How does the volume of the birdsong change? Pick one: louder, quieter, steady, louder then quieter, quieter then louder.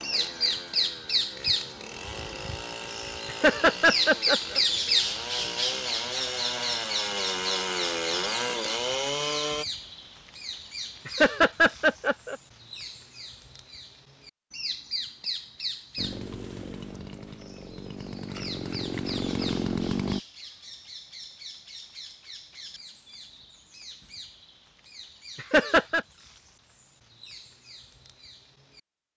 quieter.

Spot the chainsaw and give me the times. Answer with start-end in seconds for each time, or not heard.
0.0-9.7, 15.9-20.2.